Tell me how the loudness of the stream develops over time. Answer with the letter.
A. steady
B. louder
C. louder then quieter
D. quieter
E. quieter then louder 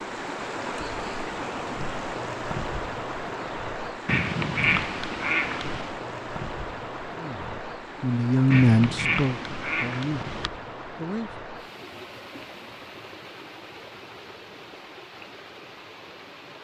D.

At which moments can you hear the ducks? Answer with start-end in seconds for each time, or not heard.
4.0-6.0, 8.5-10.5.